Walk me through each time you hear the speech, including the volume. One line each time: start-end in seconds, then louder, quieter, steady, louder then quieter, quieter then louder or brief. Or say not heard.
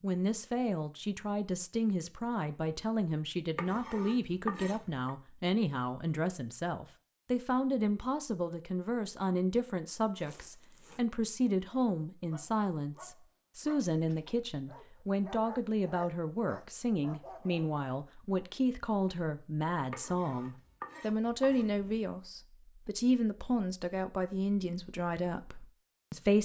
0.0-26.4 steady.